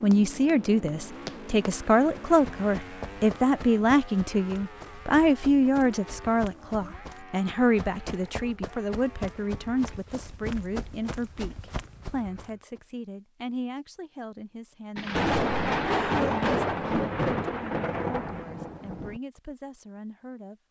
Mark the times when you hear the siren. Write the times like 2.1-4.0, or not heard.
not heard.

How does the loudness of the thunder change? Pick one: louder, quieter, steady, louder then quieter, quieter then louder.
quieter.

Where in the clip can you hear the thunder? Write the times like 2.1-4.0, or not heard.
14.9-19.2.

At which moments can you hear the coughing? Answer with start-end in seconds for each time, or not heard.
15.8-16.4.